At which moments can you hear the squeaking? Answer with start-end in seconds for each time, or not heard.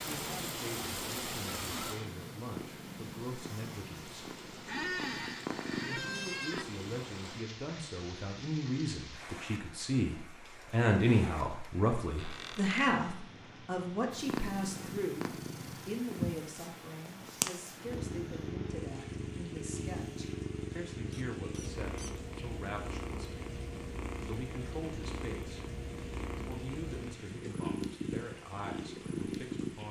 4.7-6.7, 12.2-12.9, 21.1-22.1.